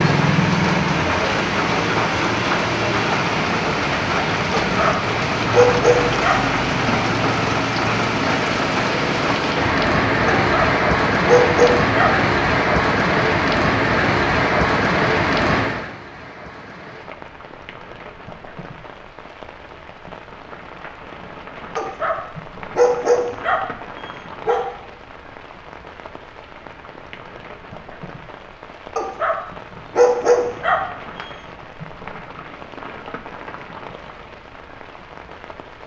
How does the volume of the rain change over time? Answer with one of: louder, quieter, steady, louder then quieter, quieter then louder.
quieter.